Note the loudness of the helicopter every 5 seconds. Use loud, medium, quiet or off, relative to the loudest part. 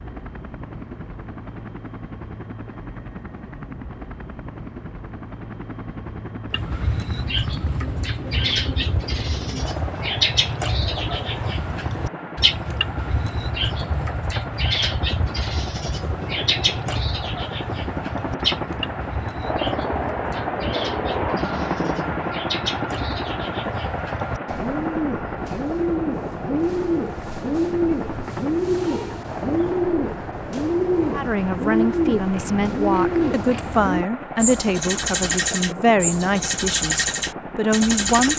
medium, medium, medium, loud, loud, medium, medium, medium.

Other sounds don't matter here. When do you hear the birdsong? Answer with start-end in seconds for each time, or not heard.
6.5-38.3.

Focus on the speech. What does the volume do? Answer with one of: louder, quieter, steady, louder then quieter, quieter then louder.
steady.